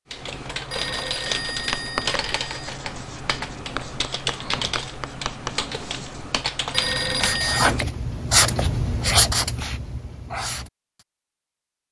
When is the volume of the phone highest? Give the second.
7 s.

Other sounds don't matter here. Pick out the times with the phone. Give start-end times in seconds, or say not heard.
0.7-2.7, 6.7-7.7.